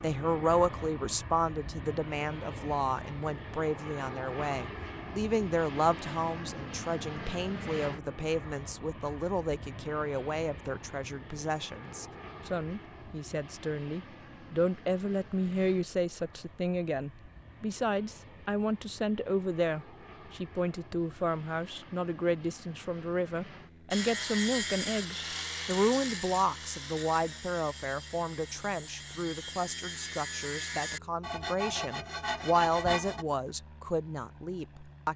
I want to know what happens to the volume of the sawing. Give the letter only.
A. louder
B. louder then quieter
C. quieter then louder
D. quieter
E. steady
C.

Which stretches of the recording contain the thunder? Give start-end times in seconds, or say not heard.
not heard.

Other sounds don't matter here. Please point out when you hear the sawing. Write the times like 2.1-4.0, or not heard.
23.9-33.2.